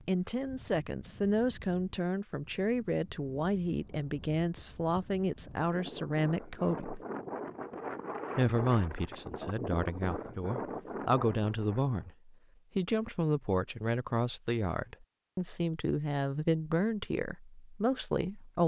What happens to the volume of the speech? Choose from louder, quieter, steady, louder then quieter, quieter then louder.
steady.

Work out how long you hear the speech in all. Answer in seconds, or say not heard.
17 s.